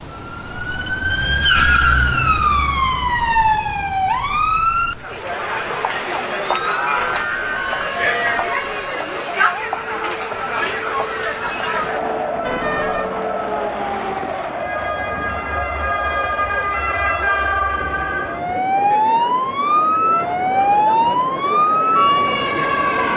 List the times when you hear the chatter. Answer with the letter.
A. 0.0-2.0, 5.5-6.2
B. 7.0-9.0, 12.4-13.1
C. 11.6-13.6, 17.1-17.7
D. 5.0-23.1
D.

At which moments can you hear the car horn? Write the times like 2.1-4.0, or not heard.
7.0-9.0, 12.4-13.1.